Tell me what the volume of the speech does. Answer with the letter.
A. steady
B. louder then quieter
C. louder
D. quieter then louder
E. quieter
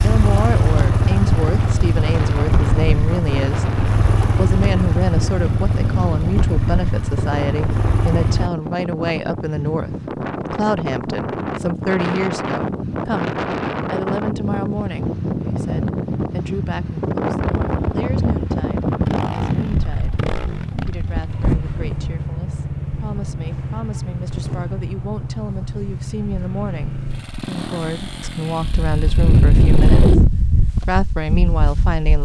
D.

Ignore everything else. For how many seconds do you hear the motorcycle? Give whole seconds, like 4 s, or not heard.
21 s.